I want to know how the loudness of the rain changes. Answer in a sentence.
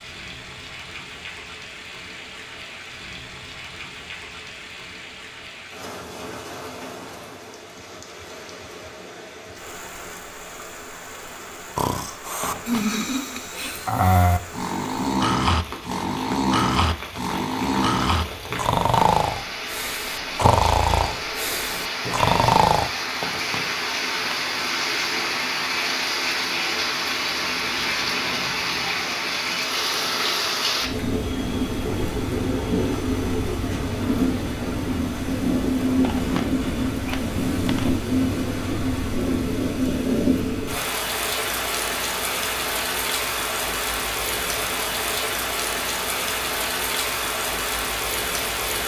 The loudness of the rain goes up.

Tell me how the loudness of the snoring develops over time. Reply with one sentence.
The loudness of the snoring stays about the same.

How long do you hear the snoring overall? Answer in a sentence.
The snoring can be heard for 11 seconds in total.